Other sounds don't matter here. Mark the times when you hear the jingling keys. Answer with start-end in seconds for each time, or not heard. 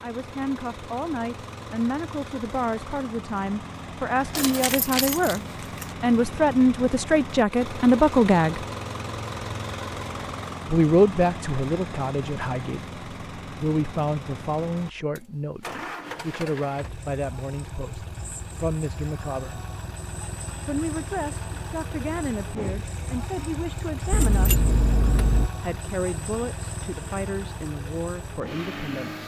4.2-5.9, 24.1-25.5.